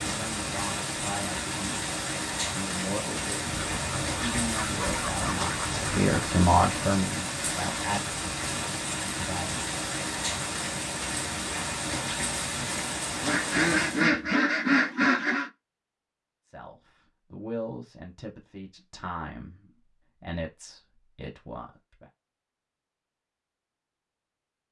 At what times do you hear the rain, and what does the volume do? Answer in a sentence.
You can hear the rain from 0.0 to 14.1 s, at a steady volume.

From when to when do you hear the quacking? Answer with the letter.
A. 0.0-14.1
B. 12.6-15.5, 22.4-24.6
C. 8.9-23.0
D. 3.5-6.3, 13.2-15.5
D.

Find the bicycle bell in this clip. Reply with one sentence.
You can't hear the bicycle bell here.